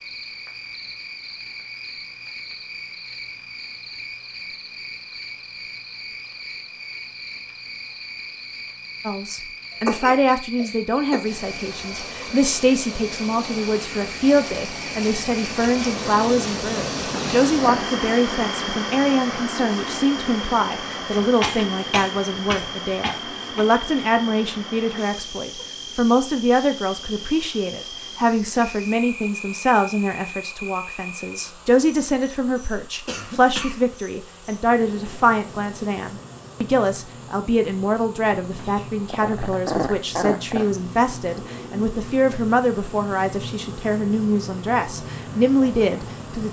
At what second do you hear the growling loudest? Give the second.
40 s.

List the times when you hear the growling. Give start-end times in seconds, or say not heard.
17.1-17.9, 38.5-40.7.